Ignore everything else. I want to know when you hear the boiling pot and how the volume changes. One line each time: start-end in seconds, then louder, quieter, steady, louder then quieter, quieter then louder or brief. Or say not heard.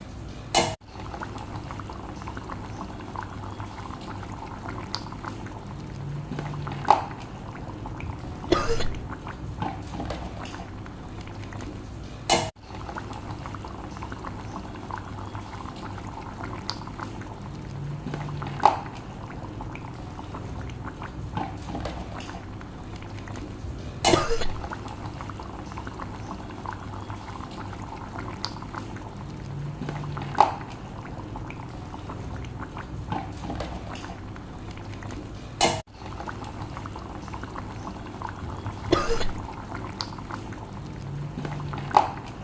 0.0-42.3 steady.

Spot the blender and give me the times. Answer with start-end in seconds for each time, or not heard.
not heard.